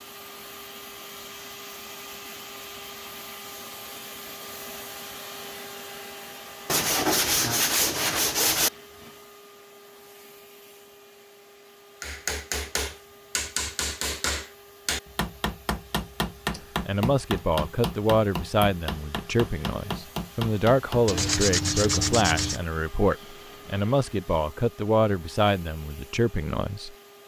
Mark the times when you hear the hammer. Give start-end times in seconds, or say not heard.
12.0-21.3.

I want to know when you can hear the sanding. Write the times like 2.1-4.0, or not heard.
6.7-8.7, 21.1-22.6.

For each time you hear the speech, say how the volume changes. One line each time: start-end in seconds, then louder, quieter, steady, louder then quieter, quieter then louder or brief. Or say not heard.
16.9-27.2 steady.